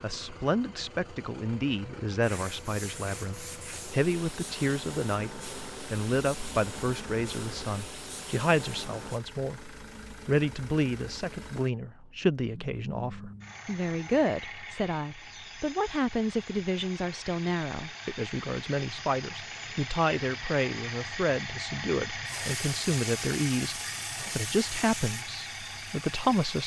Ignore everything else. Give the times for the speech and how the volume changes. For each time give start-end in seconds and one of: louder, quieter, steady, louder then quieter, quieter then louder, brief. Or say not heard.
0.0-26.6 steady.